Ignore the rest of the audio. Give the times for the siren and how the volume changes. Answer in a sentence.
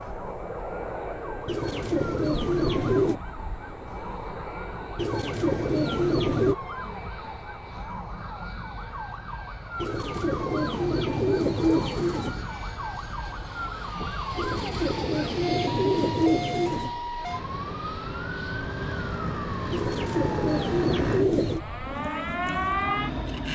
You can hear the siren from 0.0 to 23.5 s, getting louder.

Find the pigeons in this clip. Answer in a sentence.
You can hear the pigeons from 1.4 to 3.2 s, from 5.0 to 6.5 s, from 9.8 to 12.4 s, from 14.3 to 16.9 s and from 19.7 to 21.6 s.